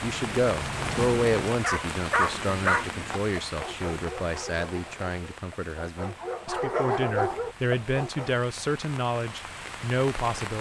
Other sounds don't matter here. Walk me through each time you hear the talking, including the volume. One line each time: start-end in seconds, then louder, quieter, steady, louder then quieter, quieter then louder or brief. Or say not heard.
0.0-10.5 quieter then louder.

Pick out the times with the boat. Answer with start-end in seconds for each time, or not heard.
0.0-1.4.